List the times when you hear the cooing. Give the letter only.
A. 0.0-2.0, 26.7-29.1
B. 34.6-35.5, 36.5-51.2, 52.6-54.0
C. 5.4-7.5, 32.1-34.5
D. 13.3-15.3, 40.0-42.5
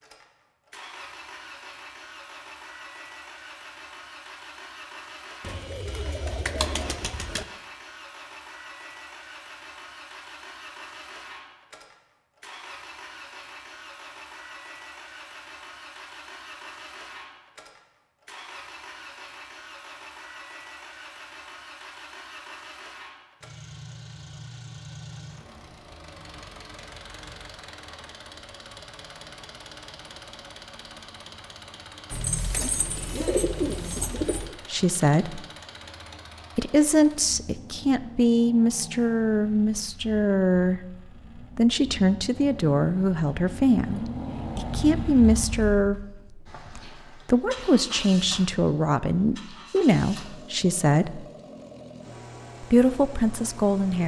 C.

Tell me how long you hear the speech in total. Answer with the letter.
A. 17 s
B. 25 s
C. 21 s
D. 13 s
A.